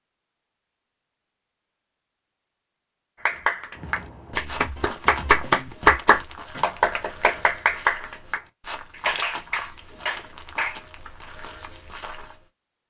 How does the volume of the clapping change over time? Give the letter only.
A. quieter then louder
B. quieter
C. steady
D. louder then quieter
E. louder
D.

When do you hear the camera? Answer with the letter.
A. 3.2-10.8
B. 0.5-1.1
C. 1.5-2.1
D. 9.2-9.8
D.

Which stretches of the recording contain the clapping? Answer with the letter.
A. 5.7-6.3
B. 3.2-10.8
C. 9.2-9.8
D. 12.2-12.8
B.